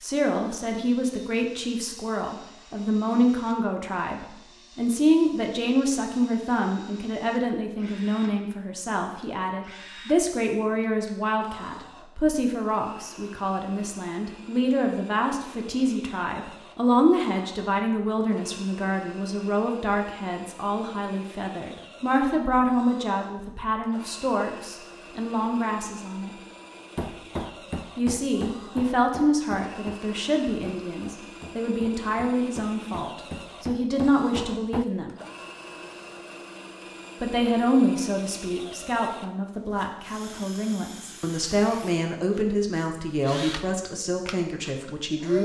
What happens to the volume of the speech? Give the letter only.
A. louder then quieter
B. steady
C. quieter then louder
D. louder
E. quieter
B.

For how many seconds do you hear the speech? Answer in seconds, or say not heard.
42 s.